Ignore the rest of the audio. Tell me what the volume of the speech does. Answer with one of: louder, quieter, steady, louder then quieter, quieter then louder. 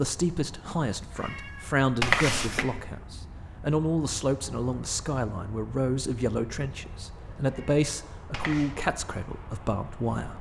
steady.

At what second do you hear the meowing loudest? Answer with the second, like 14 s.
2 s.